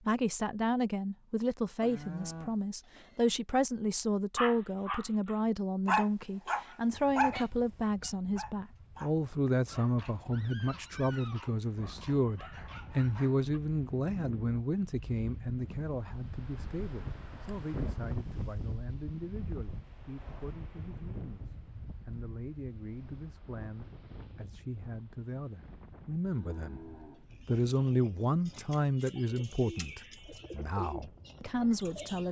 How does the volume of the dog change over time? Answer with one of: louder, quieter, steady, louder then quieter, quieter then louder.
quieter.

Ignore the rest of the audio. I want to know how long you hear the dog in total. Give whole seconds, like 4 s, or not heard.
9 s.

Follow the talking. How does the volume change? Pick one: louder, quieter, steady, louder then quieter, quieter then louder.
quieter then louder.